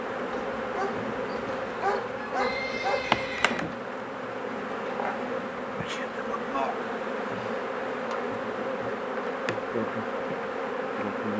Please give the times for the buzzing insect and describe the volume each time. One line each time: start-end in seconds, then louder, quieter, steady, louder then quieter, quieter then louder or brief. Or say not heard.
0.0-11.3 steady.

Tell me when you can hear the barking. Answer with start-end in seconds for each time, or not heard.
0.3-3.1.